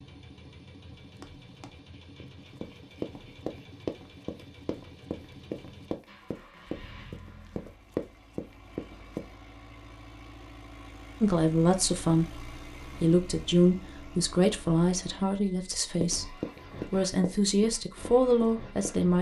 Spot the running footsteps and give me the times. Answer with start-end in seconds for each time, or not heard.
1.0-9.2, 15.7-18.9.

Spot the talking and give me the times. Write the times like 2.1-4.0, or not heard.
11.2-19.1.